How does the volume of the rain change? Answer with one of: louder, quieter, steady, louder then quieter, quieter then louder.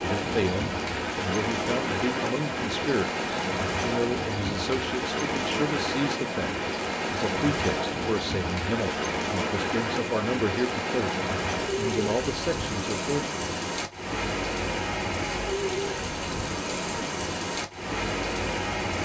steady.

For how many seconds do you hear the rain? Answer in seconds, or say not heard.
19 s.